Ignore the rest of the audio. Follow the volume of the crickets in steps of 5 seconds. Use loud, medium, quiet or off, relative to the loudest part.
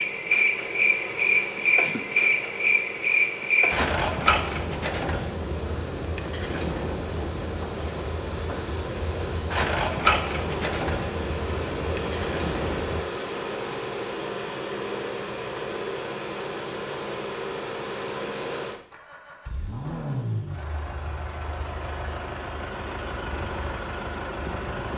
loud, loud, loud, off, off.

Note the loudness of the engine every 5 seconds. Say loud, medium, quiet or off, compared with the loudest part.
medium, medium, loud, loud, loud.